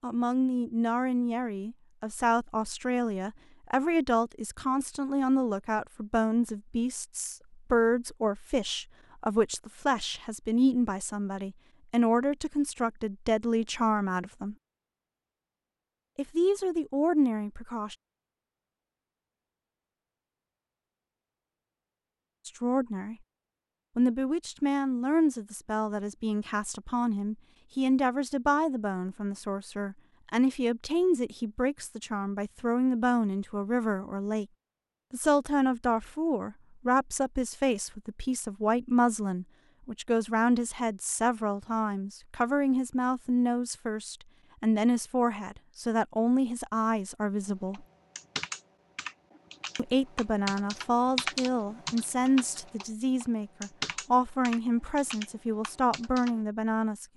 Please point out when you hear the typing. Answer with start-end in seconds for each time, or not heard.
47.5-56.4.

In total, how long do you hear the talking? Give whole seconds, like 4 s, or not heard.
48 s.